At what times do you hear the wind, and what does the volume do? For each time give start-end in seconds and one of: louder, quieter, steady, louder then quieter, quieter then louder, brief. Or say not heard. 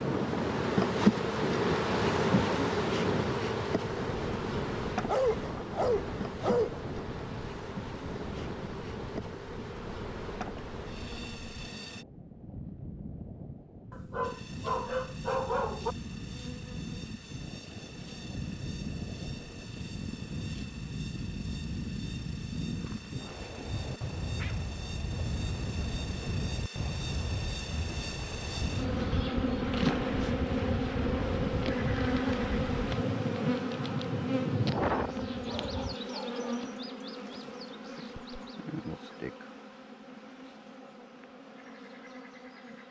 0.0-36.0 quieter then louder.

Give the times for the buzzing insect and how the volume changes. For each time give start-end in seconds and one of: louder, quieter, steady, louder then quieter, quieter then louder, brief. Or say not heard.
0.0-12.1 quieter
14.2-42.8 louder then quieter.